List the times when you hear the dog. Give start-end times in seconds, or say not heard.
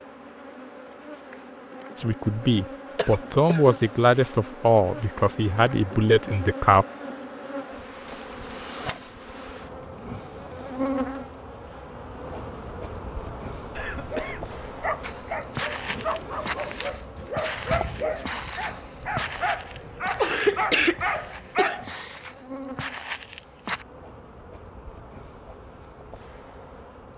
13.9-21.9.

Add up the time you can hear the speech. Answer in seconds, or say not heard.
5 s.